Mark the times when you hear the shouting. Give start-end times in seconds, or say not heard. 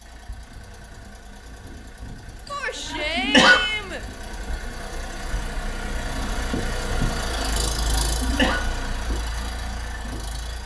2.5-4.0.